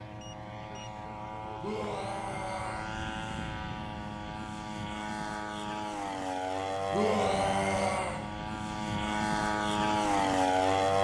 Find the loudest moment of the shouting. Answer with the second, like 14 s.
7 s.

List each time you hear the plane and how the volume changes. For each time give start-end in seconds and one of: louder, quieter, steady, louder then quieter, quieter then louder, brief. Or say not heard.
0.0-10.9 louder.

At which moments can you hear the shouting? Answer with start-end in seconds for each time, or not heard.
1.6-2.9, 6.9-8.2.